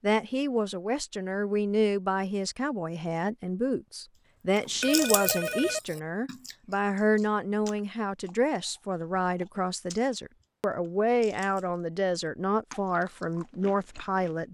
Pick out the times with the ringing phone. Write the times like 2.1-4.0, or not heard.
4.7-5.8.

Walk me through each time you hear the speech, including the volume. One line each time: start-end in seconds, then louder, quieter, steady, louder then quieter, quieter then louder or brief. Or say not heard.
0.0-14.4 steady.